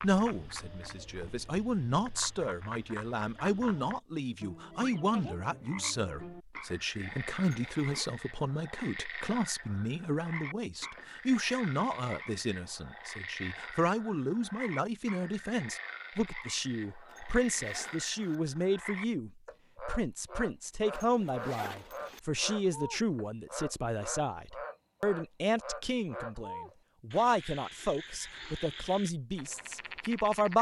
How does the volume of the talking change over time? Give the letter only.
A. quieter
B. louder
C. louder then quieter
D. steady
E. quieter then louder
D.